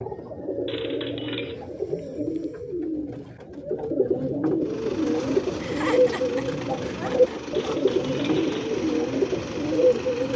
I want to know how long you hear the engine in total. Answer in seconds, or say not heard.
6 s.